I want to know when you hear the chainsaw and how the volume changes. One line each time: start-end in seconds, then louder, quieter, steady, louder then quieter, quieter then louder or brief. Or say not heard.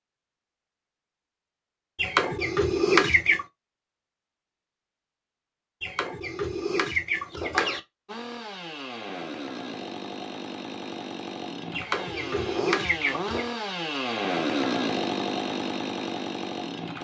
8.1-16.9 louder.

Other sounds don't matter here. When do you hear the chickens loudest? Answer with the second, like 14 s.
3 s.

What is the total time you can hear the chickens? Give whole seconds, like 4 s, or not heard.
5 s.